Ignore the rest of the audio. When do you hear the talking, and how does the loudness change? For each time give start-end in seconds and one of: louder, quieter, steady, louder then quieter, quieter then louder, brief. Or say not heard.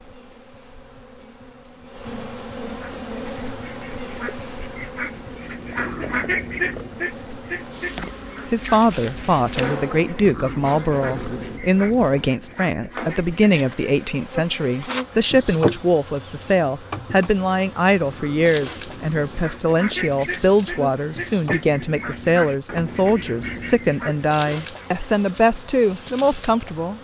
8.5-26.9 steady.